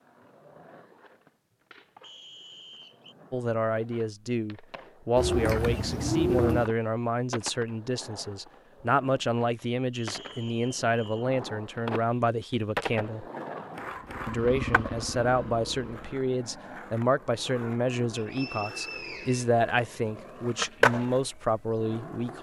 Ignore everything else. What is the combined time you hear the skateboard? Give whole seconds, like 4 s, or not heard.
22 s.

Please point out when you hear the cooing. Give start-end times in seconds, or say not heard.
5.2-6.7.